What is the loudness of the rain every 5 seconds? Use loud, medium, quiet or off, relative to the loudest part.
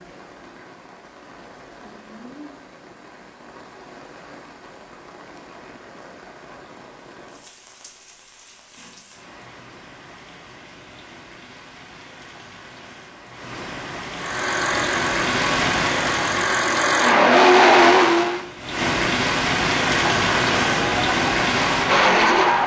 quiet, quiet, quiet, loud, loud.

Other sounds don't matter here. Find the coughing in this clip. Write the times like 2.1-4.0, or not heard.
not heard.